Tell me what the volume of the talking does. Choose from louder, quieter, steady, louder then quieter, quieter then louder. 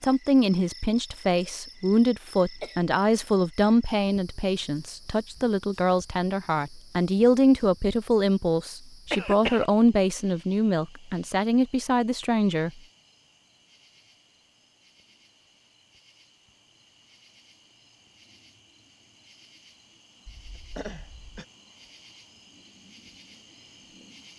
steady.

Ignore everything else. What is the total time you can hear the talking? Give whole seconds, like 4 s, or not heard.
13 s.